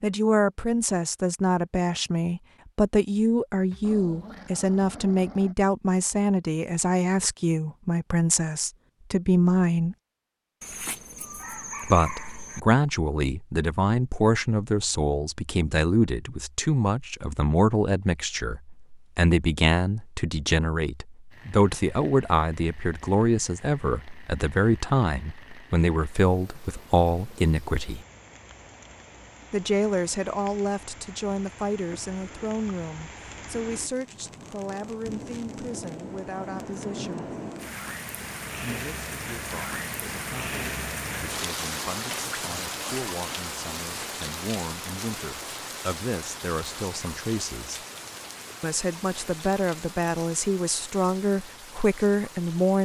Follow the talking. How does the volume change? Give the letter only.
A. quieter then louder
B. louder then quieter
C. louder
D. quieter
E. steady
A.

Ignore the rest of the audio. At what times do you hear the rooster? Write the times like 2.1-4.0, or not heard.
10.6-12.6.